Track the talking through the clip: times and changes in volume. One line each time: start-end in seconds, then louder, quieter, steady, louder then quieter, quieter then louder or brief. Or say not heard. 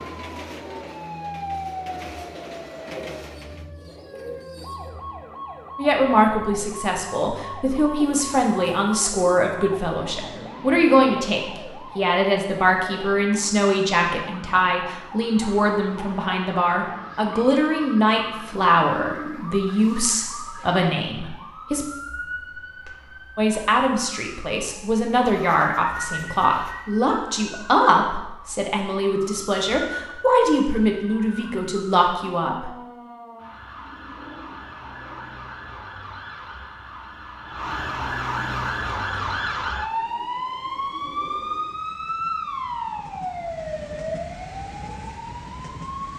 5.8-21.9 steady
23.4-32.7 steady.